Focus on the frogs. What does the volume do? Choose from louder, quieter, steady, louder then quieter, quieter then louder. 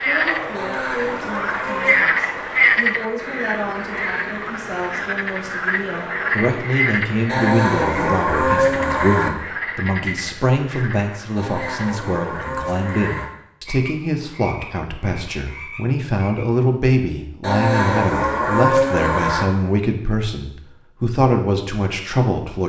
quieter.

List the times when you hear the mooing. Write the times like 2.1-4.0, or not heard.
0.6-2.1, 7.2-9.3, 11.3-13.3, 17.4-19.4.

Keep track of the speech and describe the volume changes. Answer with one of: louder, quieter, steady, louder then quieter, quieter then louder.
louder.